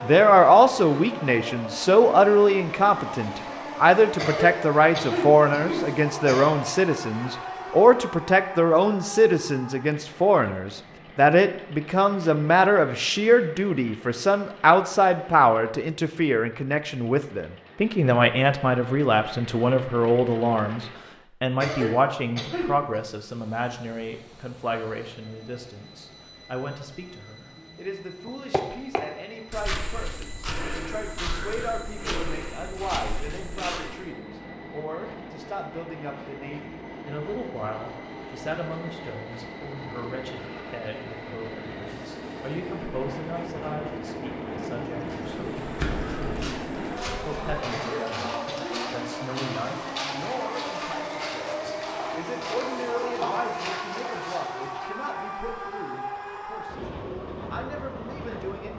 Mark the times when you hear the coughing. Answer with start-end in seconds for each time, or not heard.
4.2-6.5, 21.6-23.0, 47.7-48.8.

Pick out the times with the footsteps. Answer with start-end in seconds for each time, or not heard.
28.2-34.0, 45.1-54.9.